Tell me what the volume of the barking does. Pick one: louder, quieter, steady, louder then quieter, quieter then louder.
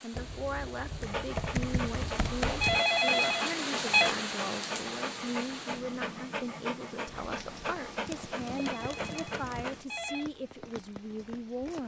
steady.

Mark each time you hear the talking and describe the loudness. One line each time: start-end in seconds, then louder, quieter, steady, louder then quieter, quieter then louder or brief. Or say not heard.
0.0-11.8 steady.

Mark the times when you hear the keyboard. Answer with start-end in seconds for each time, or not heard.
0.1-2.9, 8.1-9.8.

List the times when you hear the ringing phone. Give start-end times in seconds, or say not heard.
2.4-4.2, 8.6-10.3.